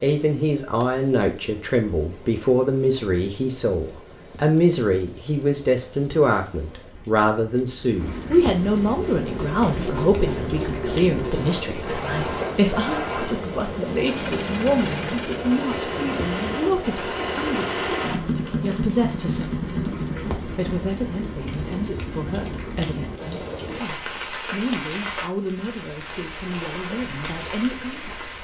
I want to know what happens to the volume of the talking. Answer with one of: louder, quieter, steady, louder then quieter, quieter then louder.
quieter.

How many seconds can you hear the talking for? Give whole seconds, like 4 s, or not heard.
28 s.